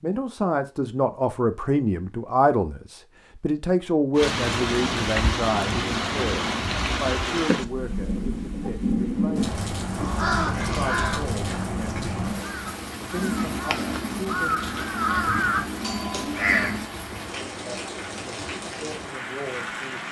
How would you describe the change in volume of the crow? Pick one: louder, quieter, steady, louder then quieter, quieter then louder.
quieter then louder.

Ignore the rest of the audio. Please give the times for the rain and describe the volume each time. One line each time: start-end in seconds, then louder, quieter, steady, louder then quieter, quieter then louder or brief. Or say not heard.
4.2-20.0 quieter.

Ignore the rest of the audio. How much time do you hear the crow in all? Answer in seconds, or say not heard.
7 s.